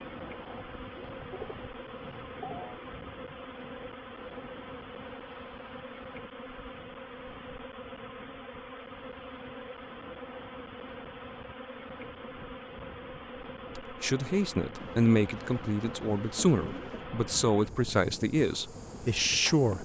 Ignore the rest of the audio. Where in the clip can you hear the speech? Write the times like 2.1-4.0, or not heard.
13.8-19.8.